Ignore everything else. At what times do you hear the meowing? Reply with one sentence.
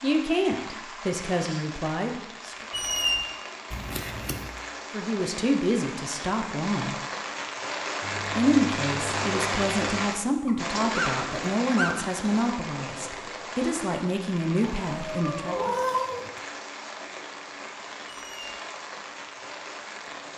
You can hear the meowing from 3.7 to 4.5 s, from 8.0 to 10.1 s and from 14.6 to 16.3 s.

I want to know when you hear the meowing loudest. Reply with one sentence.
The loudest moment of the meowing is at 16 seconds.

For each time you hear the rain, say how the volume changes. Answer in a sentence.
You can hear the rain from 0.0 to 20.3 s, getting louder then quieter.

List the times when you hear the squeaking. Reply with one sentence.
The squeaking can be heard from 2.7 to 3.2 s, from 10.4 to 12.1 s and from 18.1 to 18.6 s.